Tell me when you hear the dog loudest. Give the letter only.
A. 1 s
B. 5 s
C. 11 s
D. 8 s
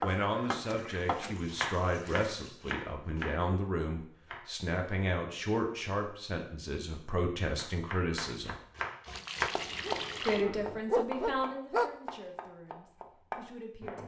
C.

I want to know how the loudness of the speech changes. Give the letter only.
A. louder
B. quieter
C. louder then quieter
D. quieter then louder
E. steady
B.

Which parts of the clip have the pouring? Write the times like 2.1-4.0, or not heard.
0.7-2.5, 9.1-10.4.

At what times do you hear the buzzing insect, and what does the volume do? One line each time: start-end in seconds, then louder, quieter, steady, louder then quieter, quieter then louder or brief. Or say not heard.
not heard.